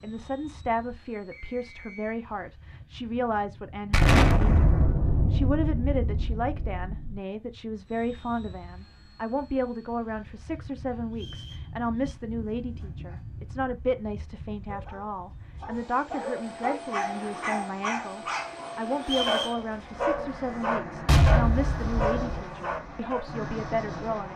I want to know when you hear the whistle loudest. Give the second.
19 s.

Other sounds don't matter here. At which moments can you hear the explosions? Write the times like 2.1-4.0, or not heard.
3.9-7.2, 21.1-22.4.